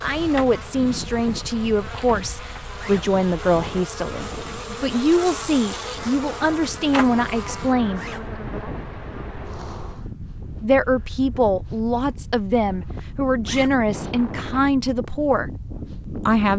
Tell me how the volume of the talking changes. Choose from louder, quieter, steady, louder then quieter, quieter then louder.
steady.